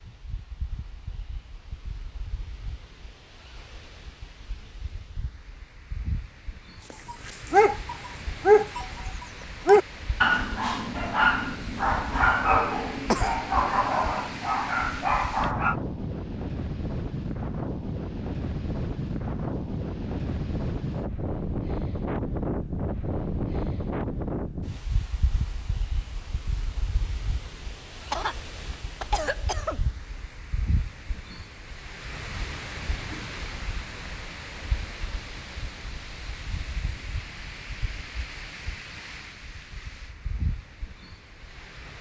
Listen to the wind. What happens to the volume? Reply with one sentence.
The volume of the wind goes up, then down.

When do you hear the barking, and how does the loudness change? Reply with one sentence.
The barking can be heard from 6.9 to 15.8 s, getting quieter.